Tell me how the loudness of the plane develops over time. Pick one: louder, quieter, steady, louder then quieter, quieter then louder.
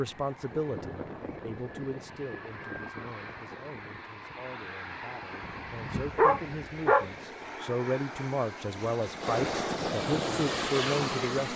louder.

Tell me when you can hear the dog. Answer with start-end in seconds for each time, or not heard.
5.5-7.1.